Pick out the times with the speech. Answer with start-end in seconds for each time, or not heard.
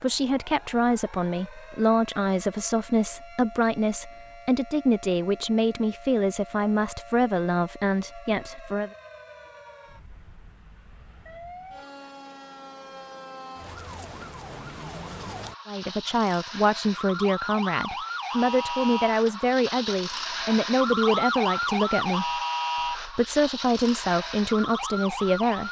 0.0-8.9, 15.7-25.6.